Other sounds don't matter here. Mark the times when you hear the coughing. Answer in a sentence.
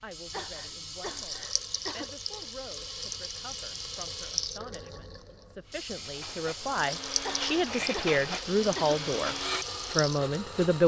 The coughing can be heard from 0.3 to 2.1 s and from 7.2 to 9.0 s.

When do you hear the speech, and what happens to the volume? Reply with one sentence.
You can hear the speech from 0.0 to 9.3 s, getting louder; and briefly from 9.9 to 10.8 s.